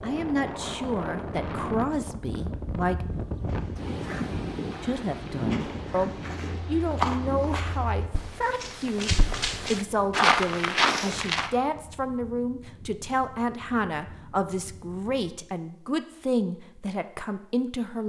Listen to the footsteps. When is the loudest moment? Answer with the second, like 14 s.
10 s.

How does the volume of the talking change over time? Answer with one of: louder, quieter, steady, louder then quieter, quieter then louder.
steady.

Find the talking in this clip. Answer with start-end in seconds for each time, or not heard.
0.0-3.0, 4.8-18.0.